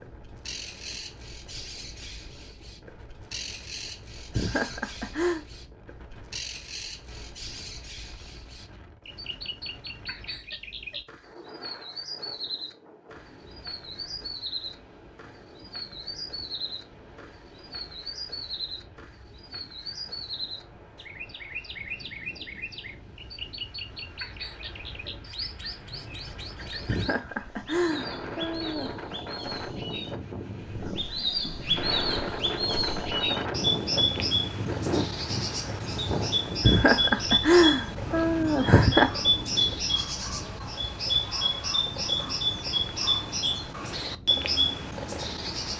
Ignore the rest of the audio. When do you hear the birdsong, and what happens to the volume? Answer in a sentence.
You can hear the birdsong from 0.0 to 45.7 s, getting louder.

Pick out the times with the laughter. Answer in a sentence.
You can hear the laughter from 4.3 to 5.5 s, from 26.9 to 28.9 s and from 36.6 to 39.1 s.